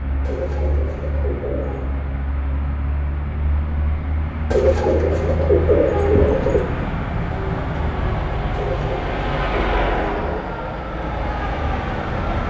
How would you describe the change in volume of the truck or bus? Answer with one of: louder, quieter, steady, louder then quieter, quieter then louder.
louder.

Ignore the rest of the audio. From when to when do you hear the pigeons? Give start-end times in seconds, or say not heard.
0.2-1.9, 4.5-6.7, 8.5-10.6.